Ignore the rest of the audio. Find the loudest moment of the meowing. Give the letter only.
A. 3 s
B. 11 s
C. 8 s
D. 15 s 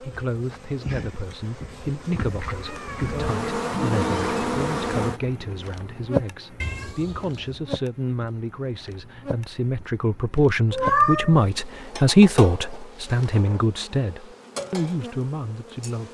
B.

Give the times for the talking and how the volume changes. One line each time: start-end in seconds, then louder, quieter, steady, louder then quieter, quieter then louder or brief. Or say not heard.
0.0-16.0 louder then quieter.